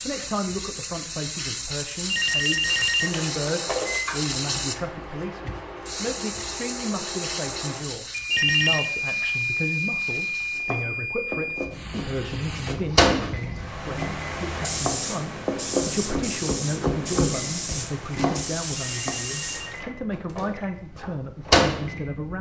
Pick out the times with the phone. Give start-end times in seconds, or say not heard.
2.0-4.0, 8.3-8.9, 18.8-20.6.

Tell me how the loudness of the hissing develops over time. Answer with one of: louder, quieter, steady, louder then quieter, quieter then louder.
quieter then louder.